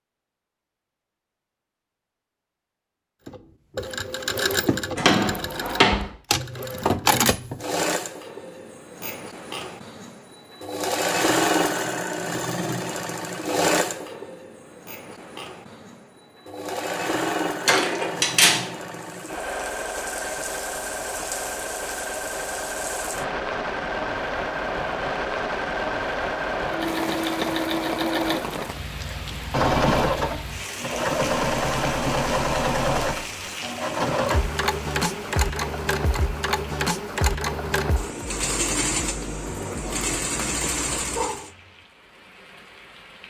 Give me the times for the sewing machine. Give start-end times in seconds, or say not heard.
3.2-41.5.